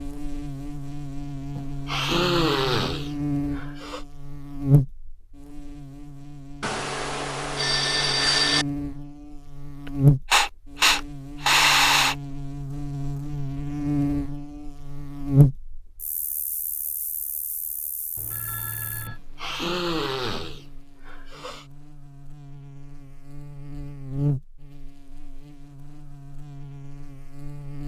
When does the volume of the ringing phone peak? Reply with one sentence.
The loudest moment of the ringing phone is at 8 seconds.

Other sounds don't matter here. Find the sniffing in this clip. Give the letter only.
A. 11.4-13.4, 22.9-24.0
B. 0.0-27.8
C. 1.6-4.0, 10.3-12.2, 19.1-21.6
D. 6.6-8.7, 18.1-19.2
C.